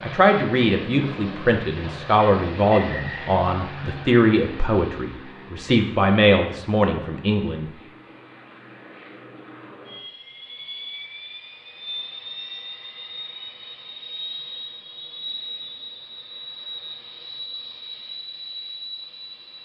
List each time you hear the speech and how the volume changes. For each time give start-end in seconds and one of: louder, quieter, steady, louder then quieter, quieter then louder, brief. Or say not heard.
0.0-7.7 steady.